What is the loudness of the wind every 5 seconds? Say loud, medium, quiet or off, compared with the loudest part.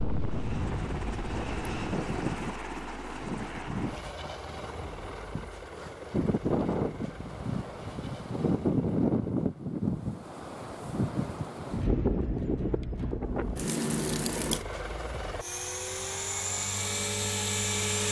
medium, loud, loud, off.